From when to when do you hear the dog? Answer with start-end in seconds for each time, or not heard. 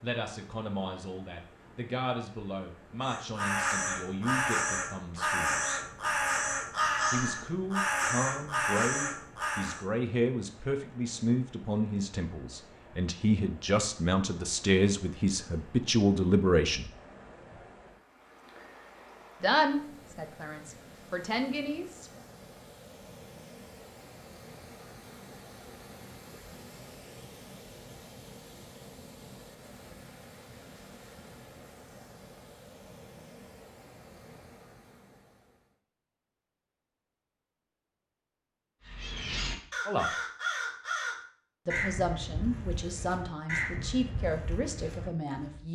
not heard.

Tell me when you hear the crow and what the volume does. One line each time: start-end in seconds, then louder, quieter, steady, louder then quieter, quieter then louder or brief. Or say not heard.
3.0-9.8 steady
38.9-45.6 quieter.